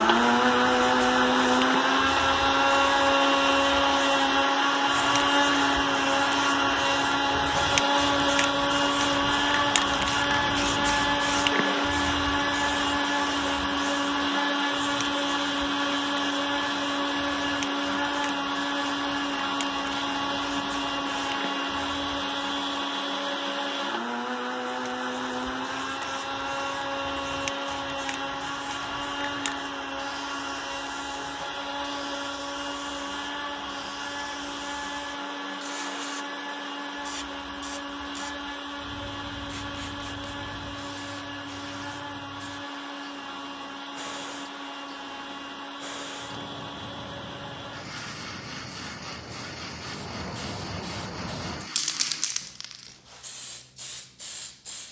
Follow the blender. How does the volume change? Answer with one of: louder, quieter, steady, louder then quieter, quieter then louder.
quieter.